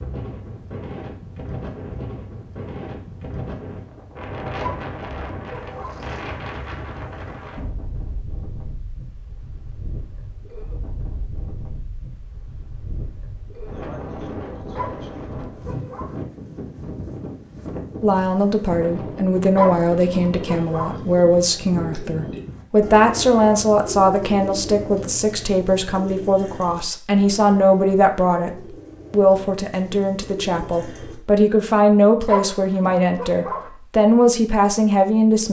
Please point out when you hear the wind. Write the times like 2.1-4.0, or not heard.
0.0-22.6.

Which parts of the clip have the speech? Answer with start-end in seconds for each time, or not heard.
18.0-35.4.